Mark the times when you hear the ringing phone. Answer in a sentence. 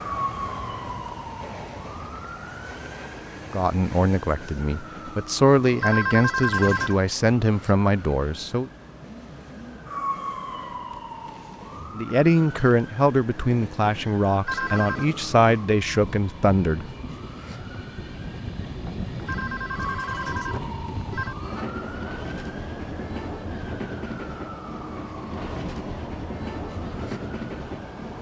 The ringing phone can be heard from 5.8 to 7.0 s, from 14.4 to 15.1 s and from 19.2 to 21.4 s.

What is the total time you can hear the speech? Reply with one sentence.
The speech can be heard for 10 seconds in total.